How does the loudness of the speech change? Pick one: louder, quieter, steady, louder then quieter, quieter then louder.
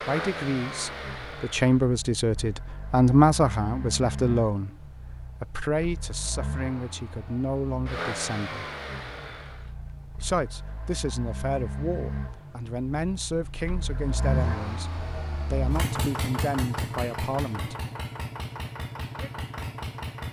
quieter.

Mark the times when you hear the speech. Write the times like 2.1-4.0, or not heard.
0.0-8.7, 10.2-17.8.